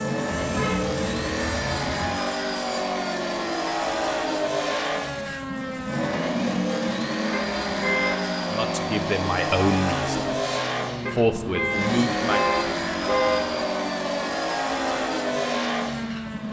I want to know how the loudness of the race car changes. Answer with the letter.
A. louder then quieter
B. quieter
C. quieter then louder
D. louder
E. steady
E.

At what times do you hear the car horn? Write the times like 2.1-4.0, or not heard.
0.3-2.1, 7.3-8.2, 11.1-13.6.